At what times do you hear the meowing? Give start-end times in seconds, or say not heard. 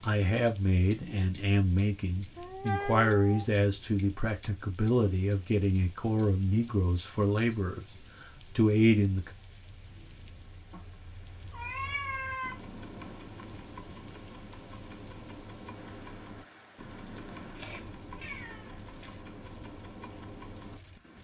2.4-3.5, 10.7-12.6, 17.4-19.2.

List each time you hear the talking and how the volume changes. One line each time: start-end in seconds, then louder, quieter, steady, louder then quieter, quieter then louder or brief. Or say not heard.
0.0-7.8 steady
8.6-9.3 brief.